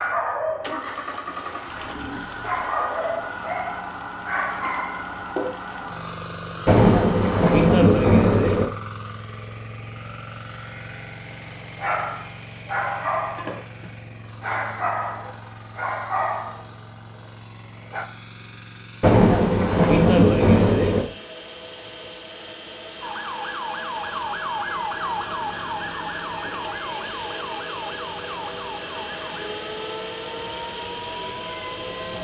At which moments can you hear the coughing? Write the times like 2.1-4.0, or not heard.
not heard.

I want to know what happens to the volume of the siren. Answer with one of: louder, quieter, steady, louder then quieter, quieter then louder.
quieter.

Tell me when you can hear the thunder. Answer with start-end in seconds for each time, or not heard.
6.7-8.7, 19.0-21.1.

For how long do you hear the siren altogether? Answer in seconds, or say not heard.
9 s.